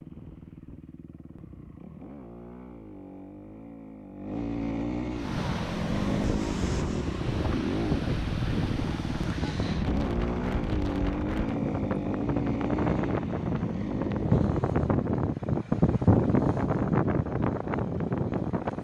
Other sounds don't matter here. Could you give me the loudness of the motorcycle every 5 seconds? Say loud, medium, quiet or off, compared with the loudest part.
medium, loud, loud, off.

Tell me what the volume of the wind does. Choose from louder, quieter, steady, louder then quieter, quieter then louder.
louder.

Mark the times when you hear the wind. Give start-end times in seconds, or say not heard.
5.1-18.8.